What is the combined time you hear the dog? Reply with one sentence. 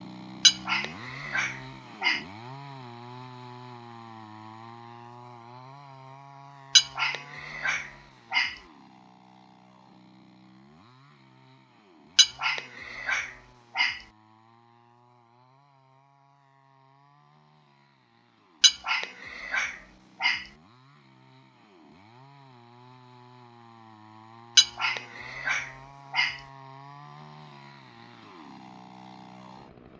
The dog can be heard for 9 seconds in total.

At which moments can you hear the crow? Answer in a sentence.
The crow can't be heard in this clip.